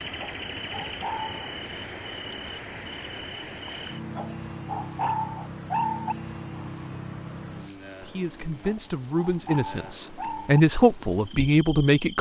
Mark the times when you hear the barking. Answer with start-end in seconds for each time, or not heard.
0.1-1.4, 4.2-6.2, 8.6-10.6.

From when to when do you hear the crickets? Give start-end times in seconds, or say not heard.
0.0-12.1.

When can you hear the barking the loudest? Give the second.
6 s.